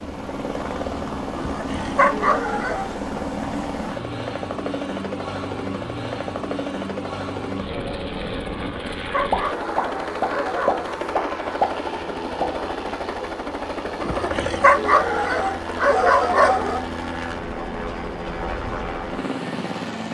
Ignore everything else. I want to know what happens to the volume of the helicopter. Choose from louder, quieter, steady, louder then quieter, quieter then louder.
steady.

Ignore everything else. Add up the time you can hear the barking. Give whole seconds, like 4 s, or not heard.
7 s.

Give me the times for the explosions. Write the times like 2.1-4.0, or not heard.
9.3-12.4.